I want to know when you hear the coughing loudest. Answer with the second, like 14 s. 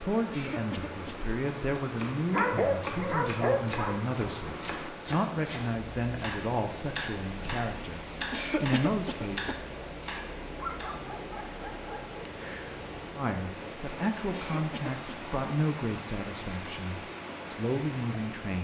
9 s.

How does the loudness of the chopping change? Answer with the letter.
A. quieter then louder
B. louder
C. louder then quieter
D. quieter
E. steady
E.